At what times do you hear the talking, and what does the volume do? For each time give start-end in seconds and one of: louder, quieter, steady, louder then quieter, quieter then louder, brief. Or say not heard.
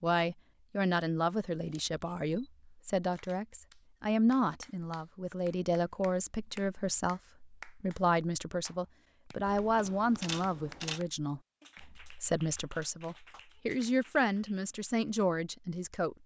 0.0-16.2 steady.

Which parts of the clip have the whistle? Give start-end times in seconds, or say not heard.
not heard.